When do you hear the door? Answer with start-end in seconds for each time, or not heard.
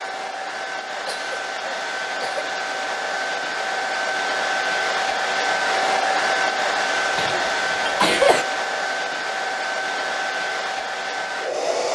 not heard.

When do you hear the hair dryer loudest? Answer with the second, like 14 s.
6 s.